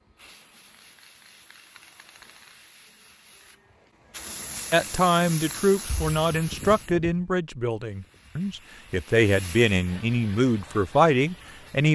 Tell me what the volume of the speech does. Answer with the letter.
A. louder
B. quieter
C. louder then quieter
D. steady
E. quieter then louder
E.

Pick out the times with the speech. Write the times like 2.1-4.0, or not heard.
4.7-11.9.